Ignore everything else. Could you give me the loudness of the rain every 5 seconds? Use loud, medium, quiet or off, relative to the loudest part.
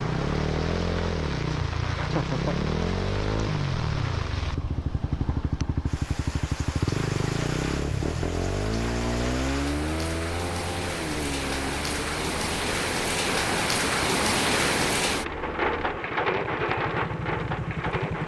medium, medium, loud, loud.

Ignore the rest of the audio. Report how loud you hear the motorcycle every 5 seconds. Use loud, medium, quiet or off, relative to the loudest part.
loud, loud, medium, medium.